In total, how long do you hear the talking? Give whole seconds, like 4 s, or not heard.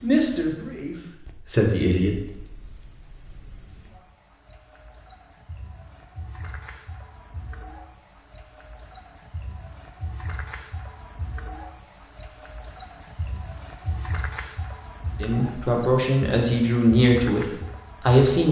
5 s.